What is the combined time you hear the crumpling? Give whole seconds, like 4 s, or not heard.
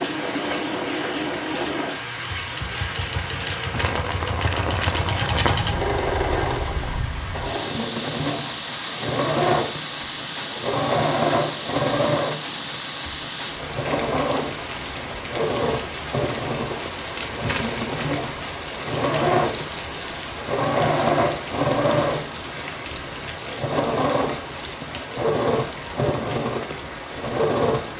3 s.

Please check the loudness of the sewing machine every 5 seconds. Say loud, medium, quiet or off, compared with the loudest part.
medium, loud, loud, loud, loud, loud.